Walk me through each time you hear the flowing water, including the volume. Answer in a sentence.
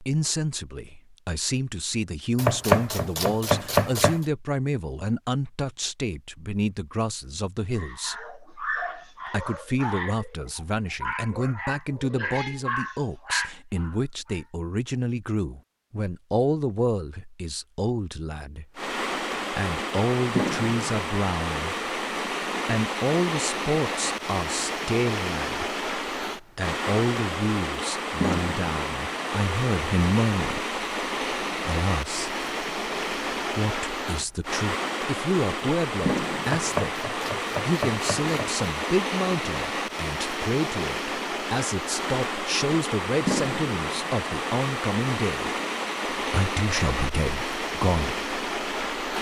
The flowing water can be heard from 18.8 to 49.1 s, at a steady volume.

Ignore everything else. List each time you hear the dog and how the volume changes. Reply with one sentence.
The dog can be heard from 7.8 to 14.6 s, at a steady volume.